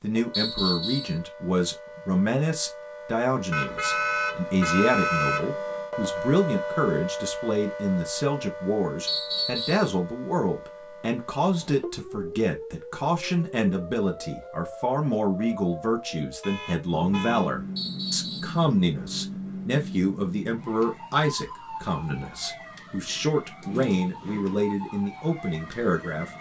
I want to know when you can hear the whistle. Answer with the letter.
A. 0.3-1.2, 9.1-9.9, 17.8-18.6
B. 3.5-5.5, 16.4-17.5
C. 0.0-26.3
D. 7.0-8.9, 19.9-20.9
A.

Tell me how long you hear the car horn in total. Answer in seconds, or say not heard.
3 s.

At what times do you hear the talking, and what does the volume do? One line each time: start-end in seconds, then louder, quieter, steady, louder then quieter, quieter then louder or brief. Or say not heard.
0.0-26.3 steady.